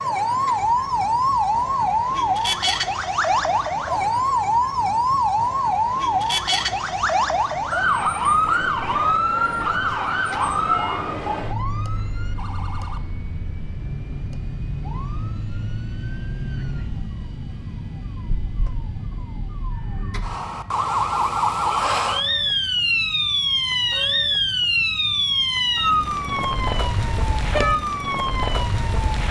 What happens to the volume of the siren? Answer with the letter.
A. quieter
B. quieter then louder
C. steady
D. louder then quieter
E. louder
B.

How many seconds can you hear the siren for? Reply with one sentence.
You can hear the siren for 29 seconds altogether.